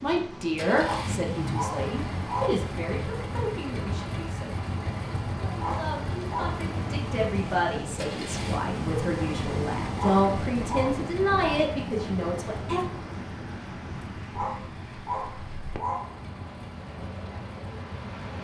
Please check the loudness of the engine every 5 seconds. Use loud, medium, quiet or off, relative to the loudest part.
loud, loud, medium, medium.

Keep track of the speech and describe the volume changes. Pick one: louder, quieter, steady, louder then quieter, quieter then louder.
quieter then louder.